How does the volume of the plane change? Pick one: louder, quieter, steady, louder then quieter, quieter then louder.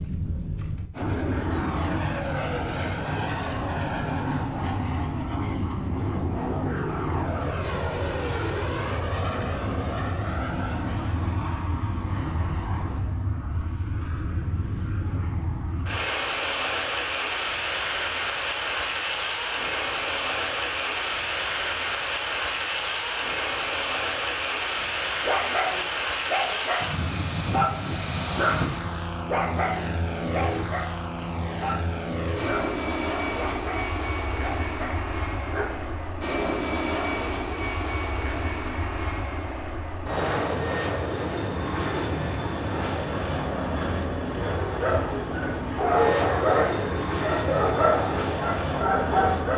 steady.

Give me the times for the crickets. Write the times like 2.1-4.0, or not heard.
not heard.